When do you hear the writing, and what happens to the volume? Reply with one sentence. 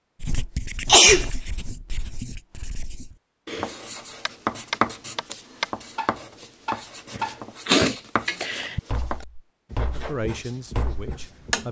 The writing can be heard from 0.2 to 11.6 s, getting louder then quieter.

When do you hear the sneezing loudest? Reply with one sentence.
The volume of the sneezing peaks at 1 second.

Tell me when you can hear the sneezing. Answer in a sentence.
You can hear the sneezing from 0.8 to 1.3 s and from 7.7 to 8.8 s.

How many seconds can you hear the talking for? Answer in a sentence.
You can hear the talking for 2 seconds altogether.